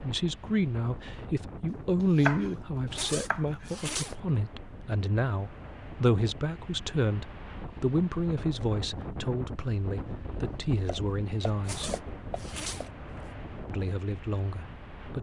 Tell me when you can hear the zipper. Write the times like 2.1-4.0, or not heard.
2.9-4.2, 11.7-13.3.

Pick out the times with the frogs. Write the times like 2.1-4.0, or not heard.
not heard.